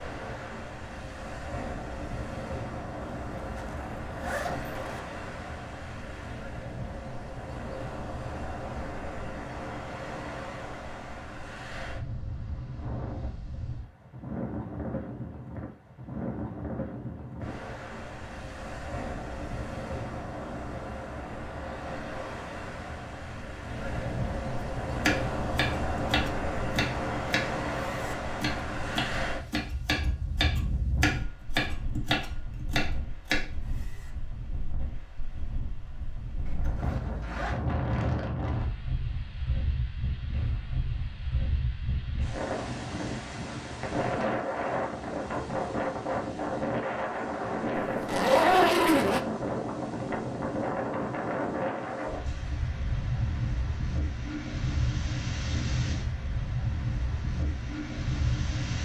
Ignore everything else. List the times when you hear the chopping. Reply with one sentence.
The chopping can be heard from 25.1 to 33.4 s.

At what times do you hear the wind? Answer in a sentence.
The wind can be heard from 0.0 to 58.7 s.